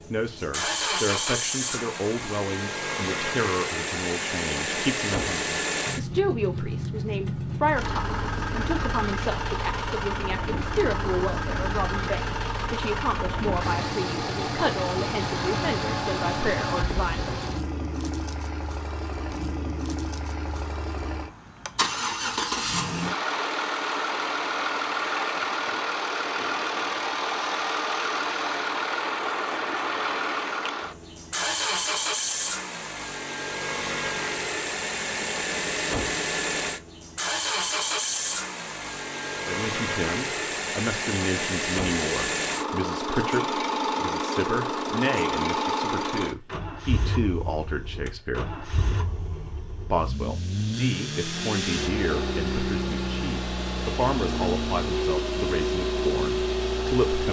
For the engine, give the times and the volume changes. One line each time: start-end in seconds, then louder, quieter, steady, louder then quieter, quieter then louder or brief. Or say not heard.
0.0-57.2 steady.